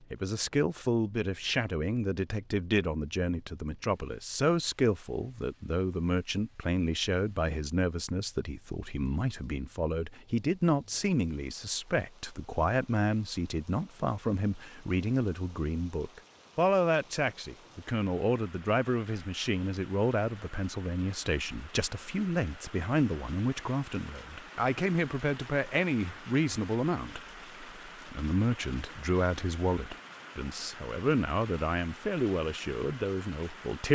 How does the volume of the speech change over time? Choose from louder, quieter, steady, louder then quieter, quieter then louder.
steady.